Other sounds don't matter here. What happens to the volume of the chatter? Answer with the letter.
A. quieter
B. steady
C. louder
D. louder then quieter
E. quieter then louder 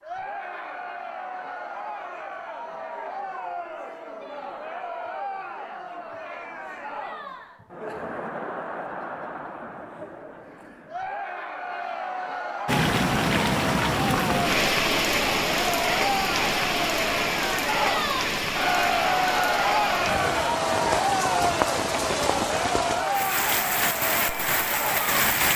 C.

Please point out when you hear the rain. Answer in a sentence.
The rain can be heard from 12.7 to 25.5 s.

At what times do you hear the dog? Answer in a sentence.
You can't hear the dog here.